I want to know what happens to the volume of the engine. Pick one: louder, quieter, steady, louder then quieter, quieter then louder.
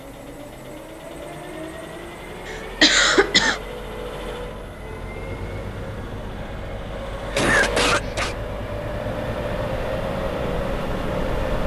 louder.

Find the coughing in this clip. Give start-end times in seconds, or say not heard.
2.5-3.6, 7.3-8.3.